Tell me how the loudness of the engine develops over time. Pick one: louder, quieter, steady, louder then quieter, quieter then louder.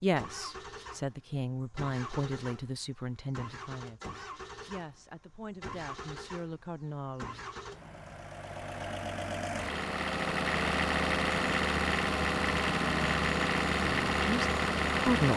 louder.